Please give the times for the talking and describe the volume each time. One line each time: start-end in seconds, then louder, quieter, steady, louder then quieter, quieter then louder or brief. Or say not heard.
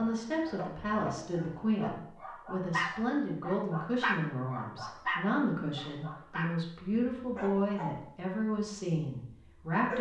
0.0-9.9 steady.